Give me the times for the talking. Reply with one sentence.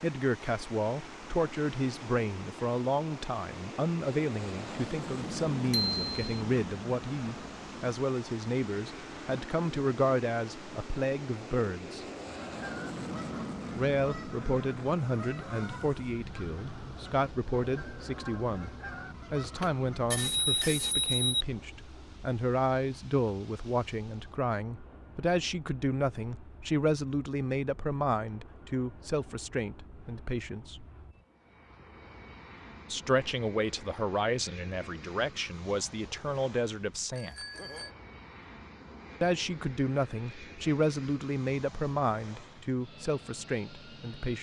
The talking can be heard from 0.0 to 12.1 s, from 13.8 to 30.9 s, from 32.9 to 37.4 s and from 39.2 to 44.3 s.